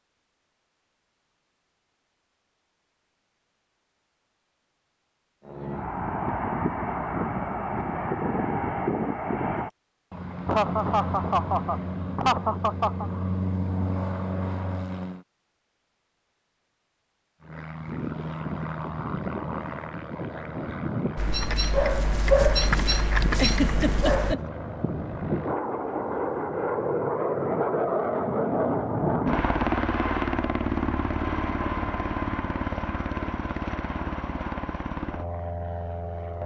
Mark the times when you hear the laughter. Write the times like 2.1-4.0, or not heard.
10.4-13.1, 23.4-24.4.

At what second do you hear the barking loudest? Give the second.
22 s.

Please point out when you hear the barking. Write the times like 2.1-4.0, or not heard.
21.1-24.4.